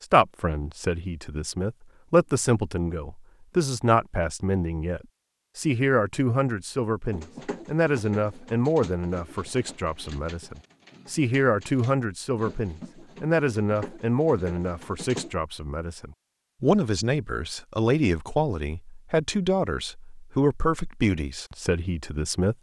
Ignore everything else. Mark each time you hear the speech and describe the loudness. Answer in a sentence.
You can hear the speech from 0.0 to 22.5 s, at a steady volume.